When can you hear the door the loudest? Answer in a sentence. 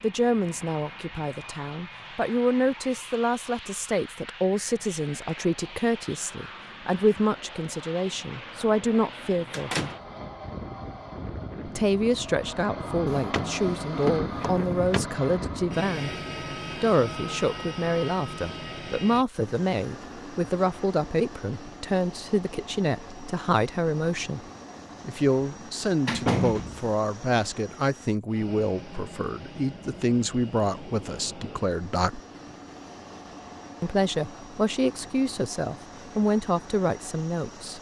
The loudest moment of the door is at 26 seconds.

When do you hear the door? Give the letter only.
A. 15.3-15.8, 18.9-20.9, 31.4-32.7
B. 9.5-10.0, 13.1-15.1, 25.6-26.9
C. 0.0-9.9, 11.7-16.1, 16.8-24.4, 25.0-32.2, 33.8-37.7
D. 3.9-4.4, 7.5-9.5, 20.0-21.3
B.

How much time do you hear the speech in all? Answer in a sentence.
You can hear the speech for 33 seconds altogether.